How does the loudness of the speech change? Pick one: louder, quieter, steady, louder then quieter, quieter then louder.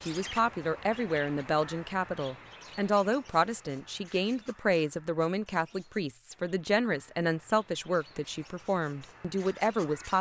steady.